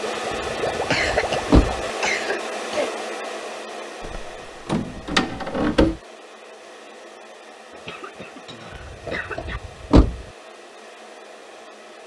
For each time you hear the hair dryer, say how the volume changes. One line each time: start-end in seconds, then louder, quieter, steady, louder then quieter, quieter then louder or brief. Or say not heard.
0.0-12.0 quieter.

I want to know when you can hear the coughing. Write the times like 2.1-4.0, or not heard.
0.9-2.9, 7.7-9.6.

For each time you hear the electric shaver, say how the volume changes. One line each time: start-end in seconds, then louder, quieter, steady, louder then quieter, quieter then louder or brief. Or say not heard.
not heard.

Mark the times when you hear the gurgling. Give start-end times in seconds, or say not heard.
0.0-1.9.